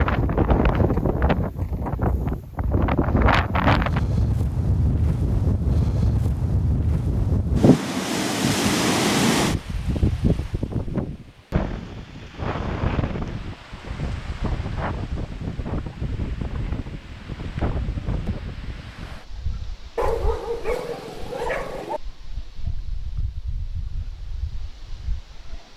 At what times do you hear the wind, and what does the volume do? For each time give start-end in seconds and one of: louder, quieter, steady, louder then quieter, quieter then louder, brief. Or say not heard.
0.0-25.7 quieter.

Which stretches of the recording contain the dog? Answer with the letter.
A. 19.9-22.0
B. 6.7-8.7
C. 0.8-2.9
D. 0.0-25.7
A.